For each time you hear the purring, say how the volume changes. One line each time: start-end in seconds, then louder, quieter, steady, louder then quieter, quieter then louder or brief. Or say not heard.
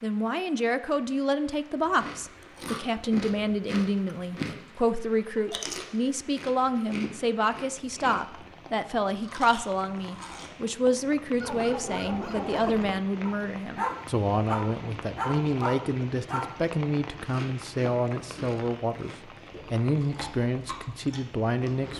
not heard.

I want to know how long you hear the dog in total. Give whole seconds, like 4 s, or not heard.
5 s.